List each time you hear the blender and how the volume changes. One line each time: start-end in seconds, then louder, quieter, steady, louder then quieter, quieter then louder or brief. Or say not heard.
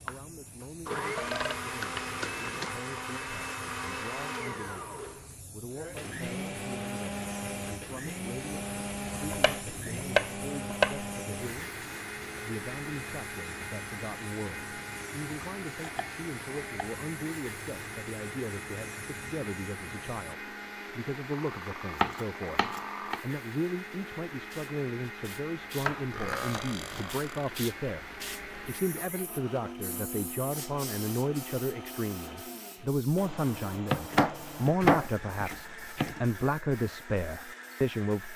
0.0-38.3 quieter.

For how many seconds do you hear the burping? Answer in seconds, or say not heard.
5 s.